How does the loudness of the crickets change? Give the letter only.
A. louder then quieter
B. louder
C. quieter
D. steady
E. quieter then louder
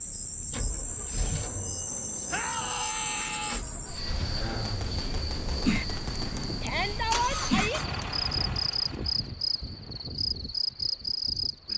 D.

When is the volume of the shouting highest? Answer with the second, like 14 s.
7 s.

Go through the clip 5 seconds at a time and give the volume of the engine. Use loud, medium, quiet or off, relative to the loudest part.
loud, loud, off.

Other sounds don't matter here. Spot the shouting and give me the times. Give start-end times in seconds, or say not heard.
2.3-3.6, 6.6-7.8.